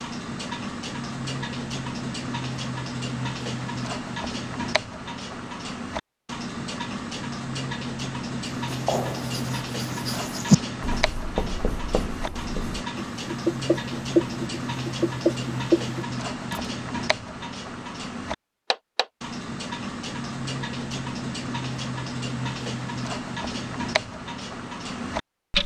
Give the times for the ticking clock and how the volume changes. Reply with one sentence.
You can hear the ticking clock from 0.0 to 25.6 s, at a steady volume.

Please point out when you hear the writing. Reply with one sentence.
You can hear the writing from 8.7 to 16.7 s.